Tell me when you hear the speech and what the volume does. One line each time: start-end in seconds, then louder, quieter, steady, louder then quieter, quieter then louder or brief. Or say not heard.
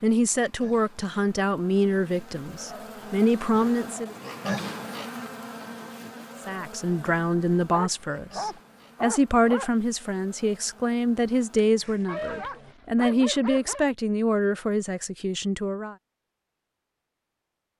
0.0-4.2 quieter then louder
6.5-15.9 steady.